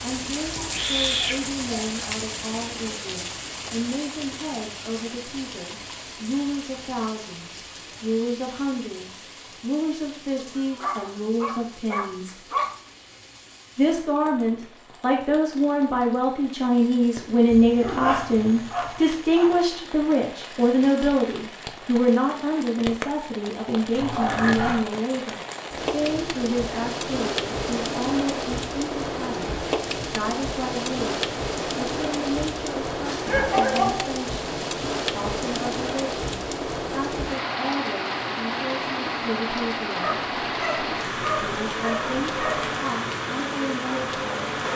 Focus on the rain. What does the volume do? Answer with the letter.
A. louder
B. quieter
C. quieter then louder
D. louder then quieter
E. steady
C.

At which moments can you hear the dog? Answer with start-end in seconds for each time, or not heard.
0.6-2.5, 10.3-12.7, 17.5-19.6, 23.9-24.9, 32.9-34.1, 40.0-42.8.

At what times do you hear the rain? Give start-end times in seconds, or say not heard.
0.0-44.7.